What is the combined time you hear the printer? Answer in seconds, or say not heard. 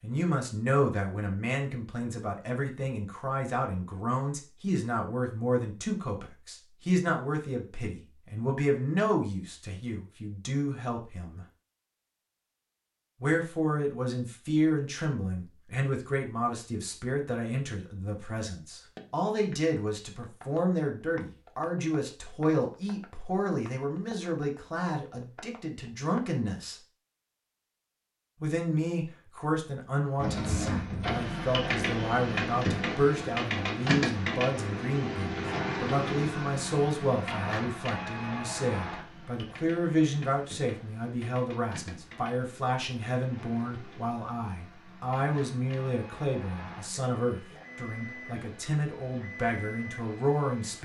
21 s.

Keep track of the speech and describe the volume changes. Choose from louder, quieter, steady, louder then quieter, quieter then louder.
steady.